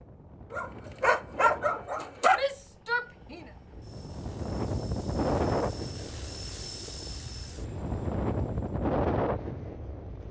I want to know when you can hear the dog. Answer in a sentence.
You can hear the dog from 0.5 to 2.5 s.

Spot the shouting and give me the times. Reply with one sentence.
The shouting can be heard from 2.3 to 3.5 s.